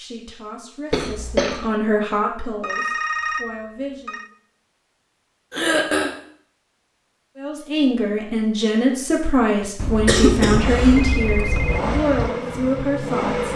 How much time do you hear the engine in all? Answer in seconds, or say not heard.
3 s.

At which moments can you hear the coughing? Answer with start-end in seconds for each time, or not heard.
0.9-1.6, 5.5-6.1, 9.6-11.1.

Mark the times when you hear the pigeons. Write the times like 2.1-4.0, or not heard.
not heard.